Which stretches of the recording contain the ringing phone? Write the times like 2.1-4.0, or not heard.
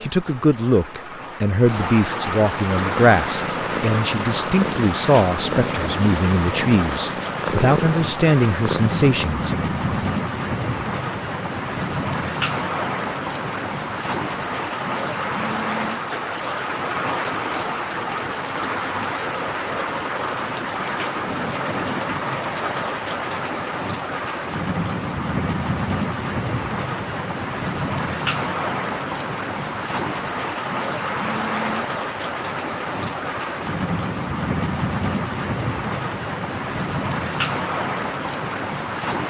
not heard.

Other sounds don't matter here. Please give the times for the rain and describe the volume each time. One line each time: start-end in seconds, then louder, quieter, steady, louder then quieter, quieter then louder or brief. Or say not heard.
0.0-39.2 steady.